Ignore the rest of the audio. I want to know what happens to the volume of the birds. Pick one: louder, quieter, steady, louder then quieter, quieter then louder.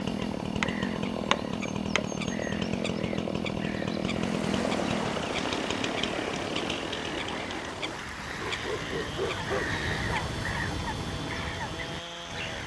louder.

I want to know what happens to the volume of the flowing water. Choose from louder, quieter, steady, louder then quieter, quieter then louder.
quieter.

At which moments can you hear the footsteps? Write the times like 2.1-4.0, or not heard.
not heard.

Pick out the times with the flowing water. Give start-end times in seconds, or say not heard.
4.0-12.5.